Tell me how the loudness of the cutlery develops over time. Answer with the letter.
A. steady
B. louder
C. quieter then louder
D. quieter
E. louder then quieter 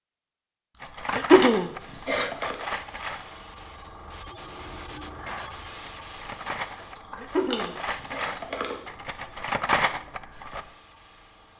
C.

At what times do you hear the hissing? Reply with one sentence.
The hissing can be heard from 1.6 to 11.5 s.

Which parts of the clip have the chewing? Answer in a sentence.
You can hear the chewing from 0.8 to 2.6 s and from 7.0 to 8.8 s.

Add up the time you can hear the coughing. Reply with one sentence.
The coughing can be heard for 3 seconds in total.